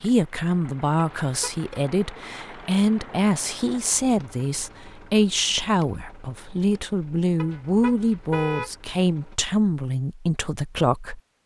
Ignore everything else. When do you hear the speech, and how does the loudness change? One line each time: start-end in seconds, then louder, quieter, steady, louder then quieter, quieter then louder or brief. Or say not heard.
0.0-11.2 steady.